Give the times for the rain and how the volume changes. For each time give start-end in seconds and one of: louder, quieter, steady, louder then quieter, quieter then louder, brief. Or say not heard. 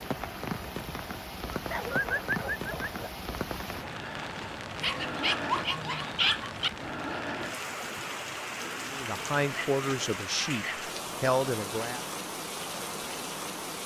0.0-13.8 steady.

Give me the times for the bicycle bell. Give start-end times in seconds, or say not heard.
not heard.